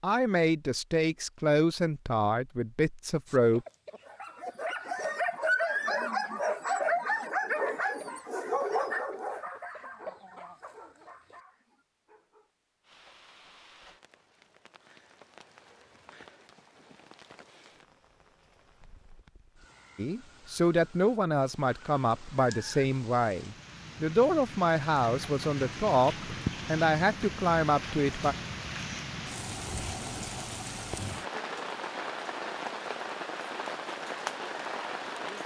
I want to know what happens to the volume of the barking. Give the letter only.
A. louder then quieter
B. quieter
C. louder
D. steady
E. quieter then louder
B.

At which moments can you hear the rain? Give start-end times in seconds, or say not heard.
12.8-35.4.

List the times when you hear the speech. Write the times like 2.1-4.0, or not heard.
0.0-3.6, 19.9-28.4.